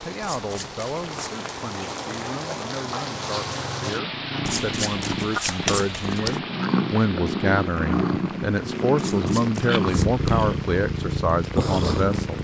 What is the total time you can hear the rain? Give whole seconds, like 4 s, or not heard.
12 s.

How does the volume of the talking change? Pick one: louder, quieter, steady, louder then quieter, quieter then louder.
louder.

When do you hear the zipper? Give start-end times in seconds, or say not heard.
not heard.